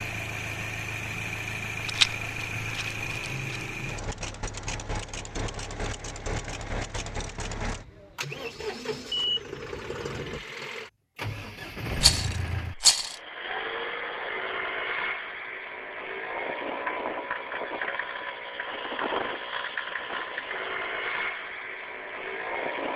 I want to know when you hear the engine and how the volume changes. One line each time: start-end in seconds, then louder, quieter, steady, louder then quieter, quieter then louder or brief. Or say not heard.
0.0-22.9 steady.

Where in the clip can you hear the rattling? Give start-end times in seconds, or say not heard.
1.9-3.6, 11.9-13.2.